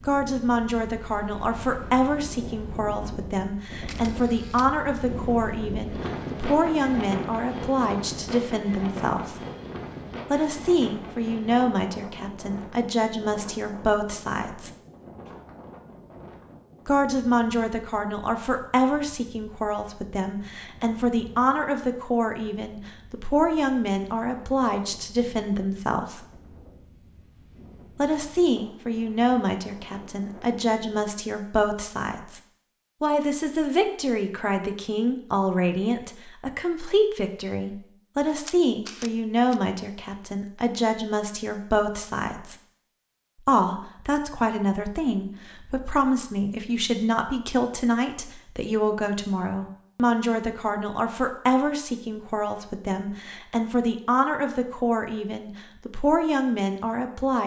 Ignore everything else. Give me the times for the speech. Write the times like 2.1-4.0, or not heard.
0.1-9.3, 10.3-14.7, 16.9-26.2, 27.9-32.4, 33.0-42.5, 43.5-57.4.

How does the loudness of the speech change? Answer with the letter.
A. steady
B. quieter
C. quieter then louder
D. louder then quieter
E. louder
A.